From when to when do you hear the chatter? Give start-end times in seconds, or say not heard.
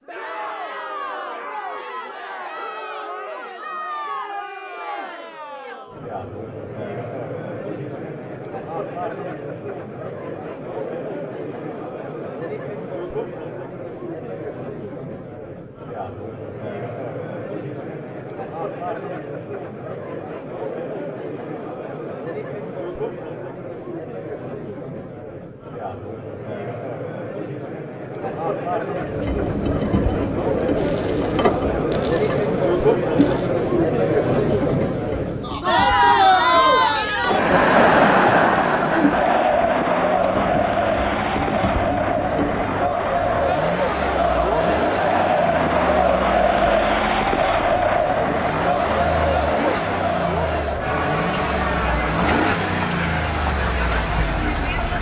0.1-54.9.